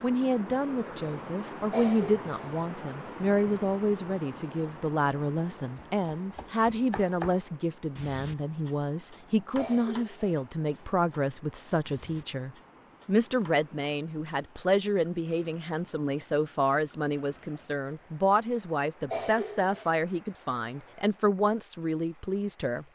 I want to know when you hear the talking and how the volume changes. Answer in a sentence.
The talking can be heard from 0.0 to 22.8 s, at a steady volume.